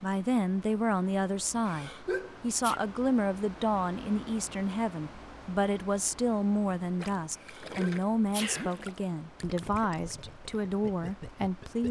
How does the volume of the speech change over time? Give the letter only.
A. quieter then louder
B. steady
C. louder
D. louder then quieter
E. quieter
B.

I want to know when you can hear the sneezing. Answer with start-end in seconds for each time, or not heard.
1.6-2.8, 7.4-8.8.